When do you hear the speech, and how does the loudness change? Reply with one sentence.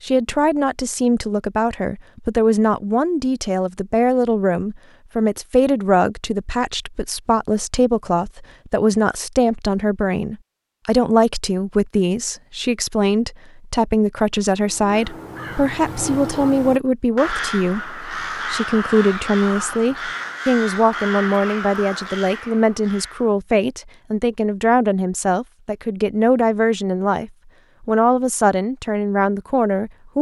You can hear the speech from 0.0 to 30.1 s, at a steady volume.